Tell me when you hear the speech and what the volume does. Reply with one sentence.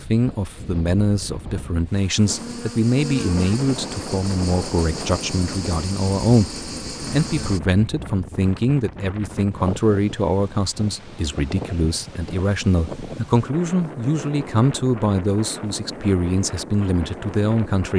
You can hear the speech from 0.0 to 17.9 s, at a steady volume.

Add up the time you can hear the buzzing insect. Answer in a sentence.
The buzzing insect can be heard for 5 seconds in total.